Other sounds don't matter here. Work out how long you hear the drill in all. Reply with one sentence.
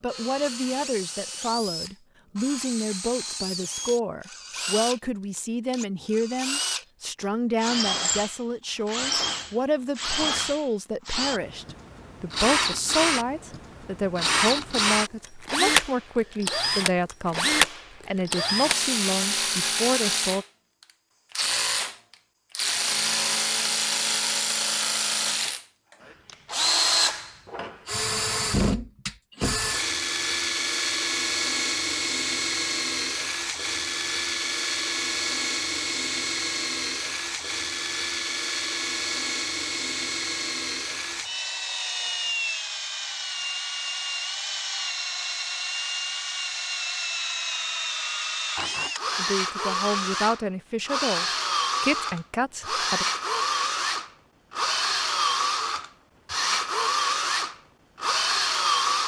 You can hear the drill for 59 seconds altogether.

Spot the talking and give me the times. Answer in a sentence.
You can hear the talking from 0.0 to 20.4 s and from 49.1 to 53.0 s.